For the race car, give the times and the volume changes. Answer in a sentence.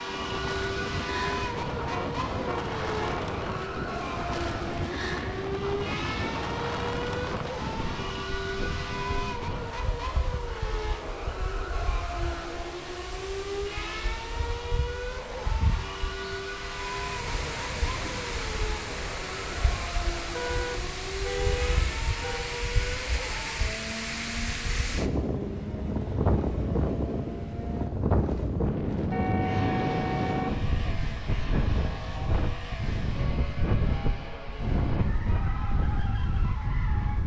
The race car can be heard from 0.0 to 37.2 s, getting quieter.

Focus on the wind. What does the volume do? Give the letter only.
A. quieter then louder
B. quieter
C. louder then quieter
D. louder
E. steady
A.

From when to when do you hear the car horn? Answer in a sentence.
You can hear the car horn from 1.9 to 3.2 s, from 20.4 to 22.5 s and from 29.1 to 30.6 s.